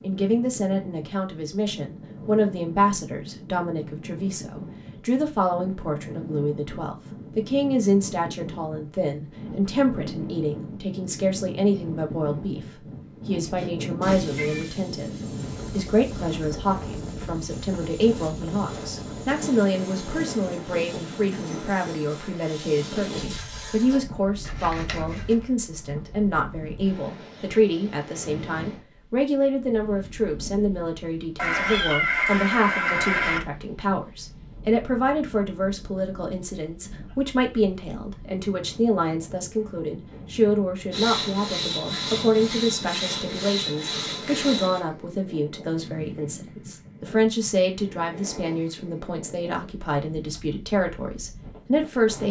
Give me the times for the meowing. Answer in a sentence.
The meowing can be heard from 14.0 to 14.8 s and from 31.4 to 33.4 s.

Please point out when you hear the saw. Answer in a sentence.
You can hear the saw from 13.4 to 25.4 s and from 40.9 to 44.8 s.